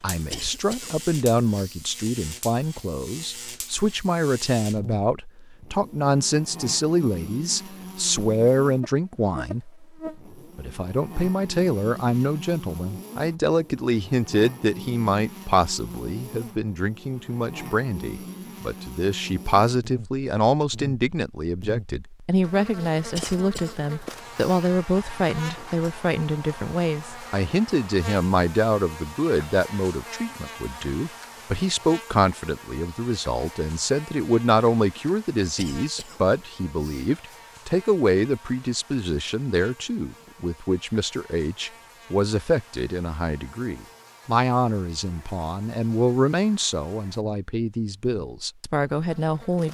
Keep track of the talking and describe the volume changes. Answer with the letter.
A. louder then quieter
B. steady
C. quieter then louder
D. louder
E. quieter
B.